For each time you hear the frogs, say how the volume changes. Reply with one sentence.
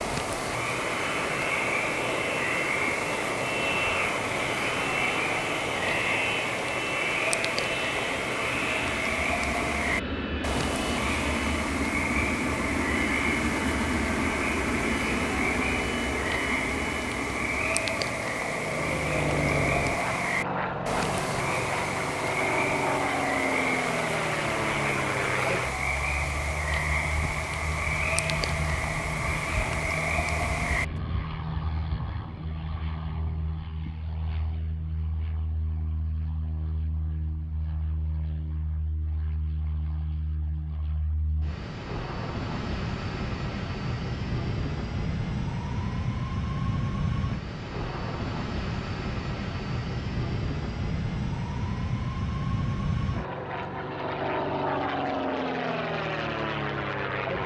You can hear the frogs from 0.0 to 31.0 s, at a steady volume.